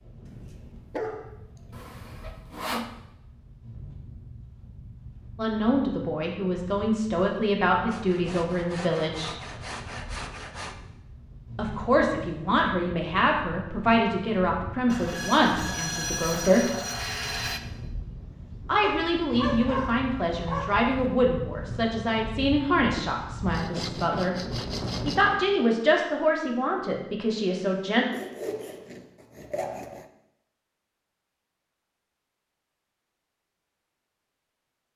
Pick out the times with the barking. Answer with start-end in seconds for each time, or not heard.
0.2-1.8, 18.8-20.9.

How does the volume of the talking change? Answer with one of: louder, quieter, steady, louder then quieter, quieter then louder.
steady.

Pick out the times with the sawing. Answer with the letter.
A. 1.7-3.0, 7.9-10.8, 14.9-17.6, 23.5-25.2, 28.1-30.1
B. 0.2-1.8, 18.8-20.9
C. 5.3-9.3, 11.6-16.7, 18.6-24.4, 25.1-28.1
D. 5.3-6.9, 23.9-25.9
A.